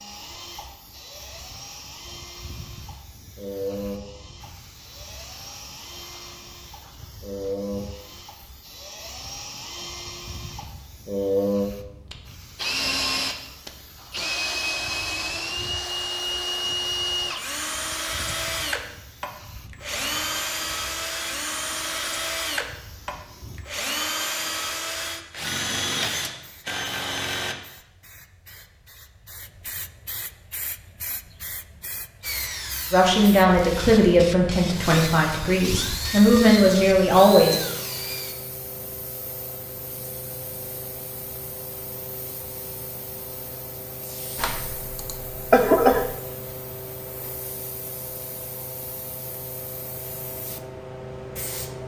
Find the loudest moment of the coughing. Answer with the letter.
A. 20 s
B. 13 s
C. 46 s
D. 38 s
C.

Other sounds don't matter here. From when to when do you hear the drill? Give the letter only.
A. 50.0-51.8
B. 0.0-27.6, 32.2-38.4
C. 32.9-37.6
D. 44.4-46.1
B.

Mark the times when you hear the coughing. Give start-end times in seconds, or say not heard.
44.4-46.1.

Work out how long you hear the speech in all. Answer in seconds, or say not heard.
5 s.